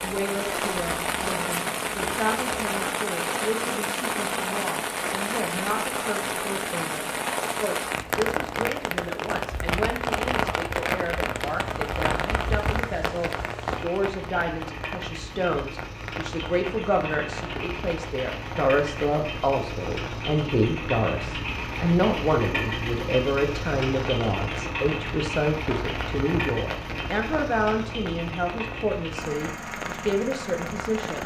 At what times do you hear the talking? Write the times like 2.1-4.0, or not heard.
0.0-31.2.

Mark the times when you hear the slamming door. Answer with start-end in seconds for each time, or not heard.
not heard.